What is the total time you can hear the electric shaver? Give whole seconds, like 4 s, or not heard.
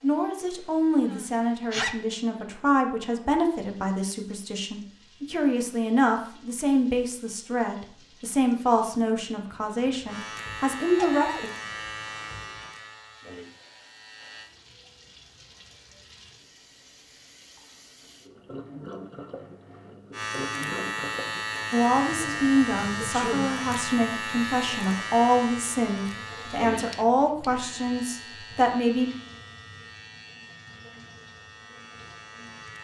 17 s.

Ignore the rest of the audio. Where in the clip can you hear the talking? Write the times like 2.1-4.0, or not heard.
0.0-11.5, 21.7-29.1.